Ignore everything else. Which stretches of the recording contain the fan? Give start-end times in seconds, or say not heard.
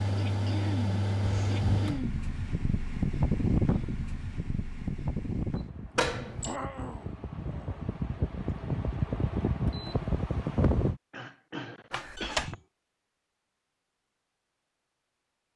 0.0-11.0.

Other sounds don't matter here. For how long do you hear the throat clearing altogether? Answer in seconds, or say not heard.
5 s.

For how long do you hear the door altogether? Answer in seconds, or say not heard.
2 s.